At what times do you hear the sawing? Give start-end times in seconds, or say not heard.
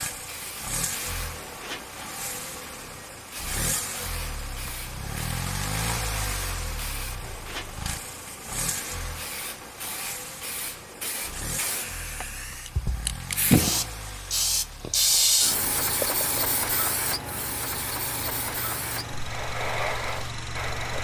not heard.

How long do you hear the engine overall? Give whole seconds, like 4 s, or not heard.
21 s.